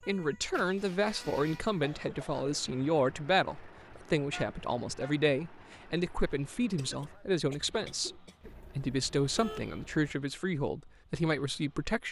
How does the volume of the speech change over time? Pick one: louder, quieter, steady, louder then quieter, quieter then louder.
steady.